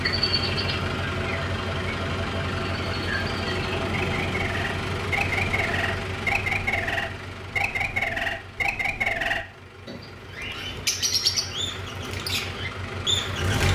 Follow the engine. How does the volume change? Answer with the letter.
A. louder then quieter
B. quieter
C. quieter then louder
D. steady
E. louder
C.